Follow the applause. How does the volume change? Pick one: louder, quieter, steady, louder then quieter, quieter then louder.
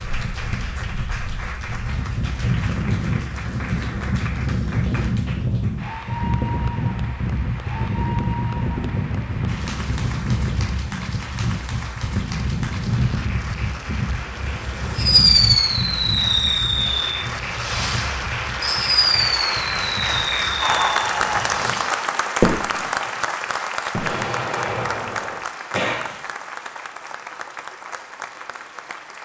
louder then quieter.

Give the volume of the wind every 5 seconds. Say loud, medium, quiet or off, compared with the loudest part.
loud, loud, loud, medium, quiet, off.